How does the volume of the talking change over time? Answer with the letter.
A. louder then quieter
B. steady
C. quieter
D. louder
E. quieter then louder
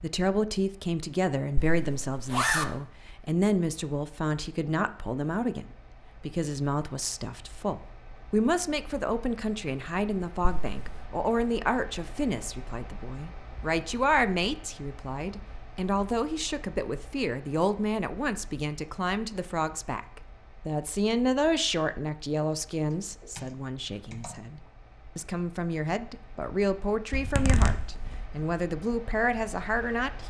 B.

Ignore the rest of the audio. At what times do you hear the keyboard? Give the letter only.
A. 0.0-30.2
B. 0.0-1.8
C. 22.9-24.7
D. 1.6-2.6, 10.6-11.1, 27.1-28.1
C.